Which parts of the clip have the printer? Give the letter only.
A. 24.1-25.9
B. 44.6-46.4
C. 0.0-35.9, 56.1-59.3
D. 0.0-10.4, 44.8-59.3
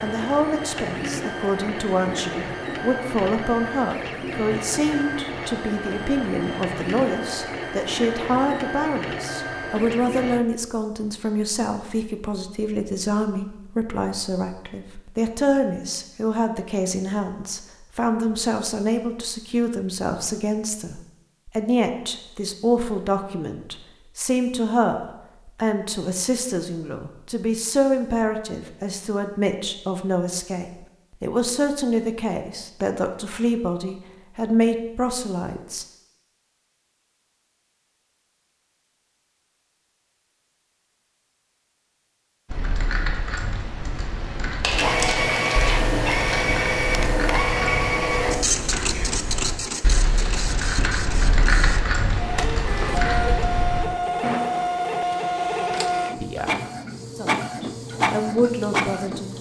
D.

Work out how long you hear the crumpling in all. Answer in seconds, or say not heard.
2 s.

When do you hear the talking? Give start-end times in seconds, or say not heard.
0.0-35.9, 56.1-59.3.